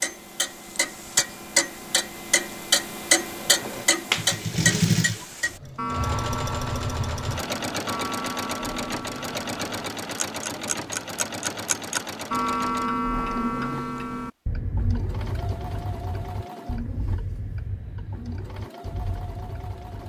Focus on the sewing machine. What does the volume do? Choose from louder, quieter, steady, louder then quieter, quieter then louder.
quieter.